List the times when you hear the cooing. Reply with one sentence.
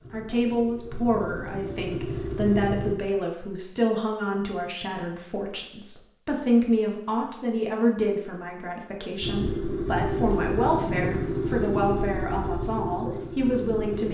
The cooing can't be heard in this clip.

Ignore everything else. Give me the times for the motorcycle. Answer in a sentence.
The motorcycle can be heard from 0.0 to 3.0 s and from 9.2 to 14.0 s.